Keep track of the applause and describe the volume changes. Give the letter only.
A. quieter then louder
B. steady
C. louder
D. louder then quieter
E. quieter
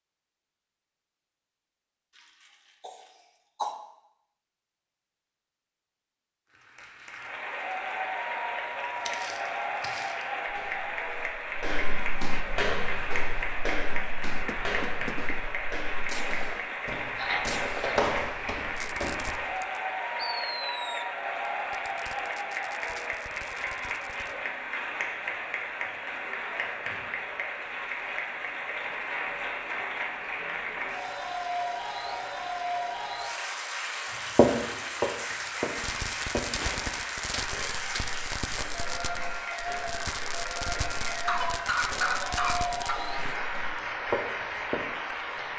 B.